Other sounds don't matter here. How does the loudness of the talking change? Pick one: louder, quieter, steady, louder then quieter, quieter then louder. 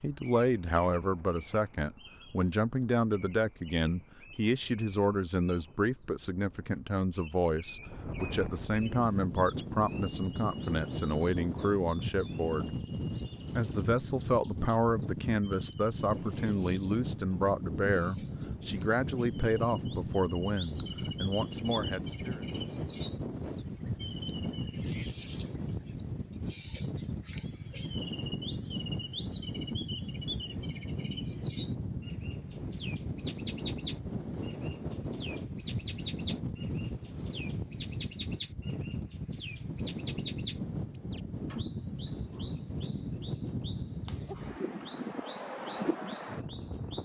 steady.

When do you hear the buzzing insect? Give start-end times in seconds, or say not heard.
not heard.